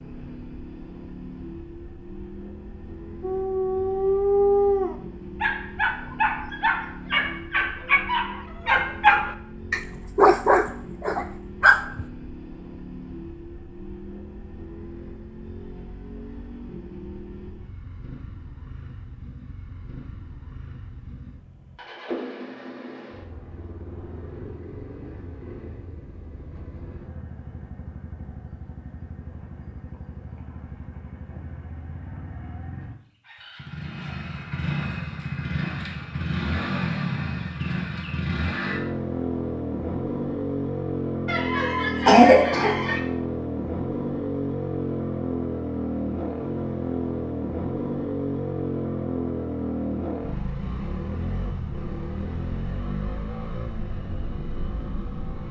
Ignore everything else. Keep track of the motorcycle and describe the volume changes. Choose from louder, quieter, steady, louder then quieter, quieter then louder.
louder.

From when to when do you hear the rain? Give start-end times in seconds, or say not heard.
not heard.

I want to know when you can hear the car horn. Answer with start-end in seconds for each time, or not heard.
not heard.